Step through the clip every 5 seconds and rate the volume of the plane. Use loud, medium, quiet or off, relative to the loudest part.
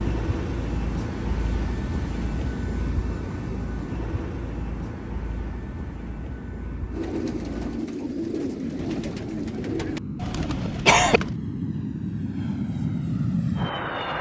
loud, medium, loud.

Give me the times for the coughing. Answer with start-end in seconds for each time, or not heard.
10.2-11.2.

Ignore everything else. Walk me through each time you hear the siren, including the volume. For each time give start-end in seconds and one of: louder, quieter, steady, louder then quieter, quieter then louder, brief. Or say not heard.
not heard.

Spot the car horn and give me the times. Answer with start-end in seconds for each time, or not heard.
not heard.